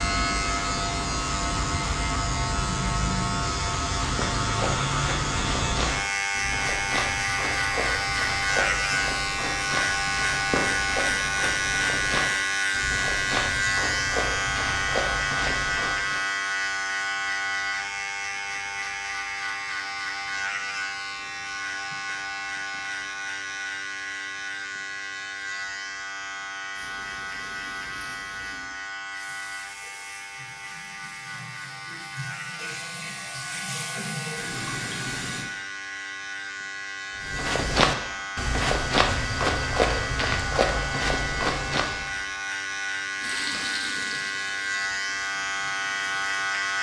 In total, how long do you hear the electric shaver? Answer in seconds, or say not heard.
47 s.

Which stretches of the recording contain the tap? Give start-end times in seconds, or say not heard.
26.7-35.5, 43.2-46.5.